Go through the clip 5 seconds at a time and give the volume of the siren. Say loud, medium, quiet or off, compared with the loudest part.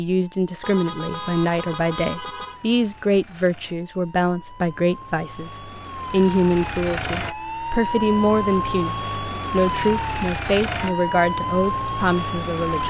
quiet, loud, loud.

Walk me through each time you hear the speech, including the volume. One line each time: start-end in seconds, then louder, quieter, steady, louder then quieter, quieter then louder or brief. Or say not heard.
0.0-12.8 steady.